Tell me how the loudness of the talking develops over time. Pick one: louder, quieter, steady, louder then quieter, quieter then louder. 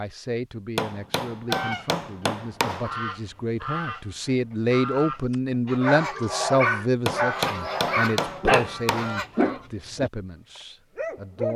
louder then quieter.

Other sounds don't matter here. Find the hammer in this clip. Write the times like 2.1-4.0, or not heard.
0.8-3.0, 7.0-9.2.